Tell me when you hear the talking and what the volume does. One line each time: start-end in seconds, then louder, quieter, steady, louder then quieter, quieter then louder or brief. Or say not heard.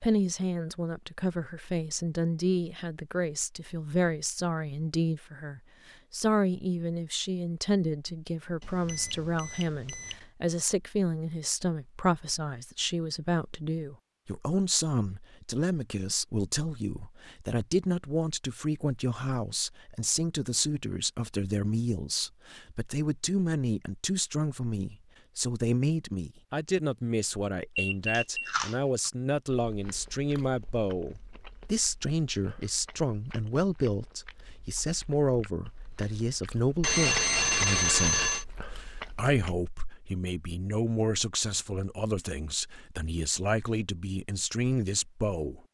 0.0-45.6 steady.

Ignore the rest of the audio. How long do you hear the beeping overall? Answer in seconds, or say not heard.
4 s.